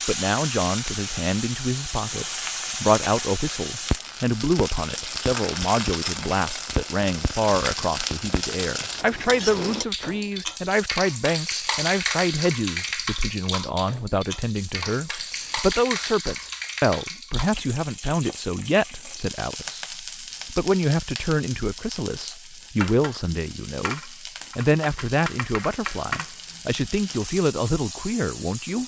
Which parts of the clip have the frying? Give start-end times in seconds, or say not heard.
0.0-28.8.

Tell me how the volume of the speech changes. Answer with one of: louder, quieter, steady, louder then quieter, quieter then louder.
steady.